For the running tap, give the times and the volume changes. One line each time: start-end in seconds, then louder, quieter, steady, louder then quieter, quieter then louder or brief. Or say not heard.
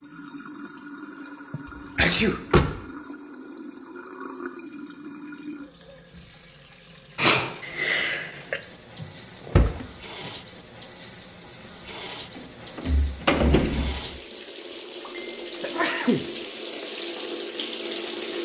0.0-18.4 louder.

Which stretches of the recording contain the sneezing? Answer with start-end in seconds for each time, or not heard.
1.5-2.4, 7.2-8.6, 15.1-16.2.